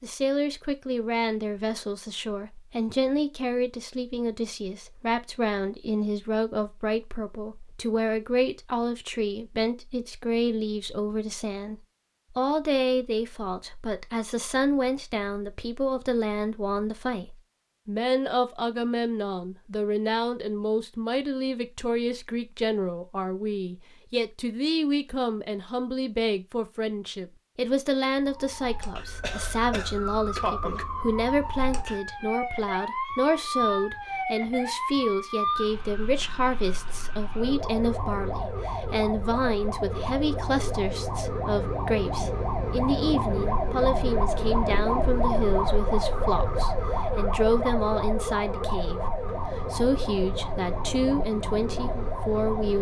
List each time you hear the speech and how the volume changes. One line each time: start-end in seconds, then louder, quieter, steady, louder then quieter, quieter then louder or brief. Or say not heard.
0.0-52.7 steady.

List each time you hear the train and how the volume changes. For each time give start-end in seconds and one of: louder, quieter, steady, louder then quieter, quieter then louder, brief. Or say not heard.
not heard.